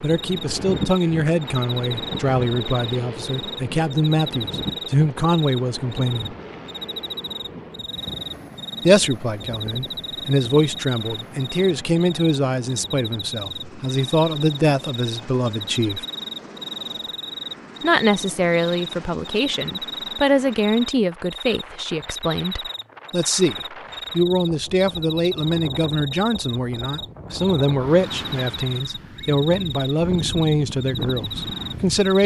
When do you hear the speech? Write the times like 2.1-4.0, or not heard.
0.0-6.3, 8.8-16.1, 17.8-32.2.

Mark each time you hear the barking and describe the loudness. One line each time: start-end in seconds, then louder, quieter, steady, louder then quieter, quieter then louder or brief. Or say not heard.
not heard.